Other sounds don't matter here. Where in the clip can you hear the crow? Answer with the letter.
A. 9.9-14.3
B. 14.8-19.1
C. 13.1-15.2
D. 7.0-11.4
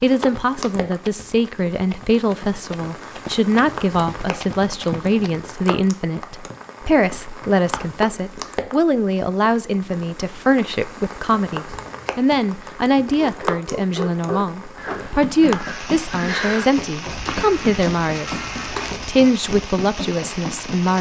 B.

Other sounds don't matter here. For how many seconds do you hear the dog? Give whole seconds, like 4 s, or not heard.
2 s.